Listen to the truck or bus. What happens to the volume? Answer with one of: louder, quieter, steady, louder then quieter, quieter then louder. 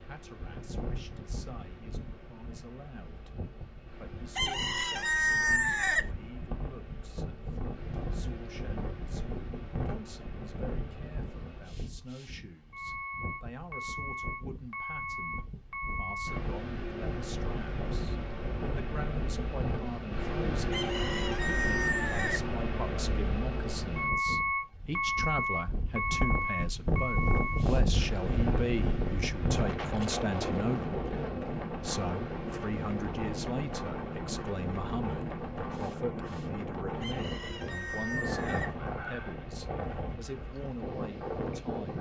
louder then quieter.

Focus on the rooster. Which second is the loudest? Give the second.
5 s.